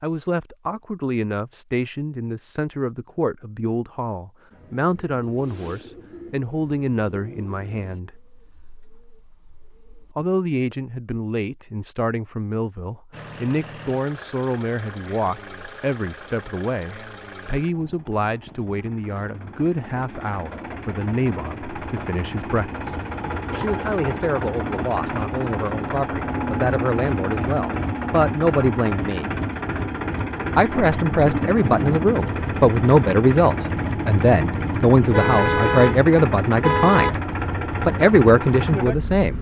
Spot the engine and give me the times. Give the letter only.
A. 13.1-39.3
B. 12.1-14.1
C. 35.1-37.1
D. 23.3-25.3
A.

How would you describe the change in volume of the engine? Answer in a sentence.
The volume of the engine goes up.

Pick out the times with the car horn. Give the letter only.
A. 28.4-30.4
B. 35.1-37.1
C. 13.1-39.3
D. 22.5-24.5
B.